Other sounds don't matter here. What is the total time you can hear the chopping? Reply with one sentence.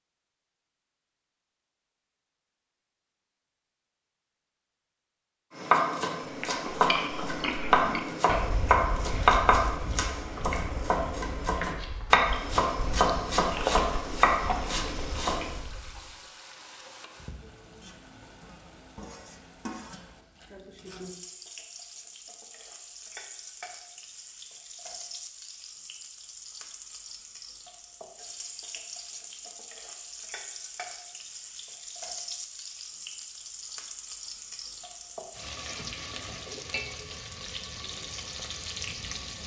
You can hear the chopping for 10 seconds altogether.